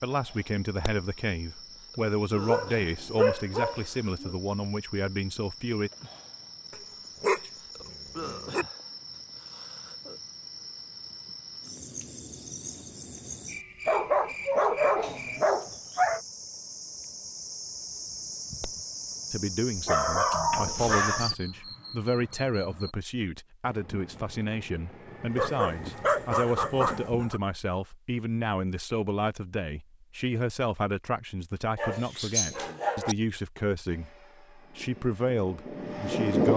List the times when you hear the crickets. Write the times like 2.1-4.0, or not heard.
0.0-22.9.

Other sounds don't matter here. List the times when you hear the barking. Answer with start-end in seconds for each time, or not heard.
2.5-4.3, 6.7-8.7, 13.8-16.2, 19.8-21.4, 25.4-27.4, 31.8-33.1.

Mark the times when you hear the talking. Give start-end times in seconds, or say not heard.
0.0-5.9, 19.3-36.5.